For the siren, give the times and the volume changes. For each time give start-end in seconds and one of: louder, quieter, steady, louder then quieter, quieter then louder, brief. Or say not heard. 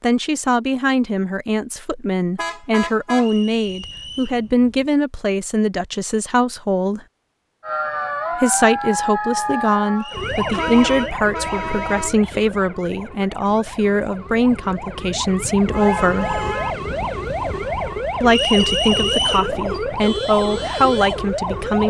7.6-21.8 quieter then louder.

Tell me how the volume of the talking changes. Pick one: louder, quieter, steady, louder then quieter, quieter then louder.
steady.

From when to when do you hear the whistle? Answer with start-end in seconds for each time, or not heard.
3.1-4.4, 9.9-11.2, 18.2-19.5.